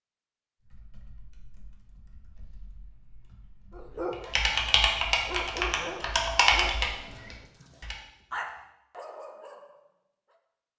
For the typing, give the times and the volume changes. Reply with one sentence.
The typing can be heard from 0.6 to 8.0 s, getting louder.